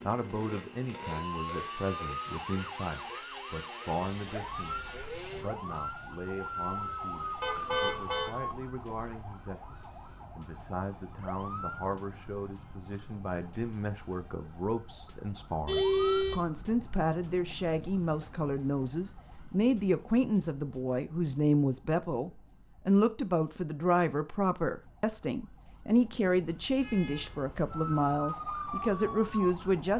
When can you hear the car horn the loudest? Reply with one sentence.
The volume of the car horn peaks at 16 seconds.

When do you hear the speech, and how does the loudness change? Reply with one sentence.
You can hear the speech from 0.1 to 29.9 s, getting louder.